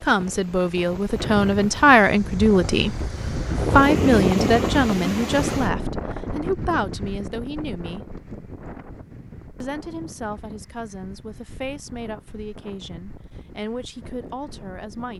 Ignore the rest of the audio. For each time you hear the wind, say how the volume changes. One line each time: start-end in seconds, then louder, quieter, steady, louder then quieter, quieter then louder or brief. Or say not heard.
0.0-15.1 louder then quieter.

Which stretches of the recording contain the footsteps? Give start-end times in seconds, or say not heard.
not heard.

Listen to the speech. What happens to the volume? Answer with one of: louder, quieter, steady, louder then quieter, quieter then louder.
quieter.